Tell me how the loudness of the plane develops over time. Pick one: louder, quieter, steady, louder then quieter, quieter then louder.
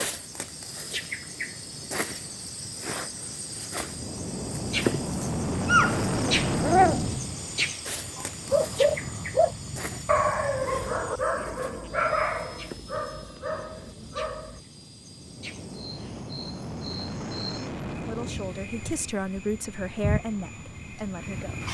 louder then quieter.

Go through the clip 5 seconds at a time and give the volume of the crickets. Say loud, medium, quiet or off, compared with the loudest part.
loud, loud, quiet, medium, loud.